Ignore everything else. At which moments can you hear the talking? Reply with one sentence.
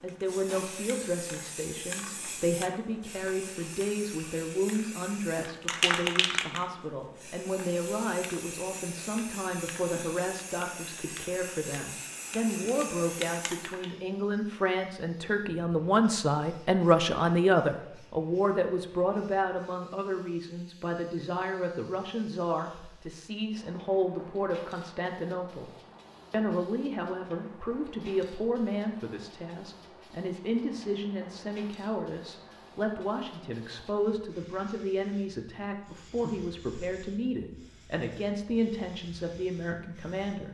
The talking can be heard from 0.0 to 25.7 s and from 26.3 to 40.4 s.